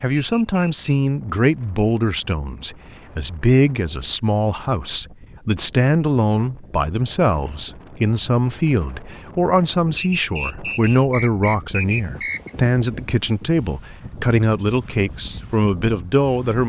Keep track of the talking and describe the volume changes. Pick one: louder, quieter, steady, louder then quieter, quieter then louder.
steady.